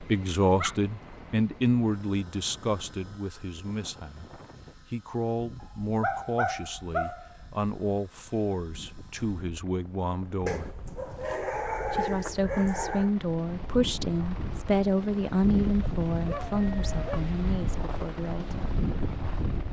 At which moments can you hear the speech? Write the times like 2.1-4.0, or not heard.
0.0-10.7, 11.9-18.6.